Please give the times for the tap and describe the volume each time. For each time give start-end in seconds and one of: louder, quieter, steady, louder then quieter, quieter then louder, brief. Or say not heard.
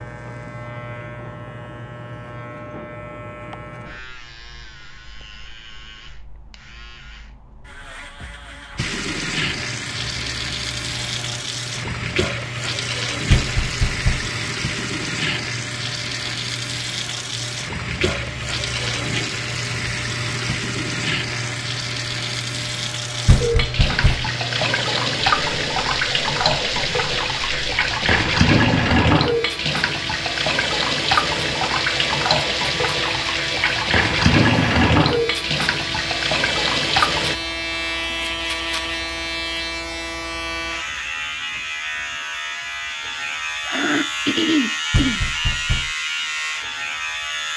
8.8-37.4 louder.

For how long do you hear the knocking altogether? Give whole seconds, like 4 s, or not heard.
3 s.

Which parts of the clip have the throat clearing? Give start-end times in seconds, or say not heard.
43.6-45.2.